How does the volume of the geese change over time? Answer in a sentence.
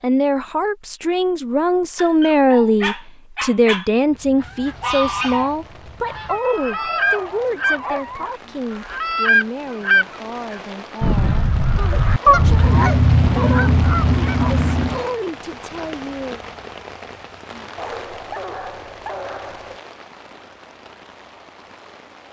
The volume of the geese goes up.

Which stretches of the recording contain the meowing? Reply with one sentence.
You can hear the meowing from 12.2 to 12.7 s.